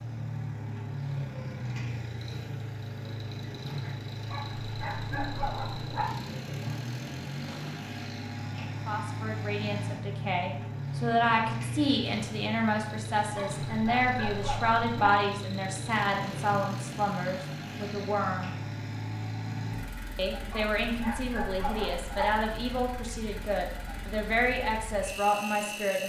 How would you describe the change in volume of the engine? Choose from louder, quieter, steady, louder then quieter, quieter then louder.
quieter.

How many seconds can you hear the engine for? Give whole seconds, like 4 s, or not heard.
26 s.